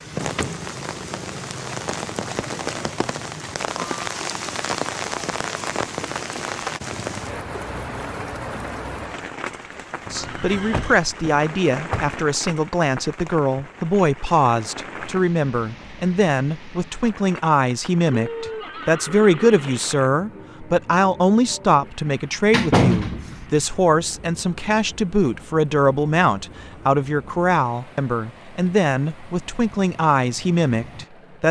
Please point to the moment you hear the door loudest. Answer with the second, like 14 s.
23 s.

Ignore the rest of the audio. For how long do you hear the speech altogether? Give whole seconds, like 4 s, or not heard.
21 s.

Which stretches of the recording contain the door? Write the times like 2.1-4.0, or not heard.
0.1-0.7, 10.7-12.1, 22.1-23.4.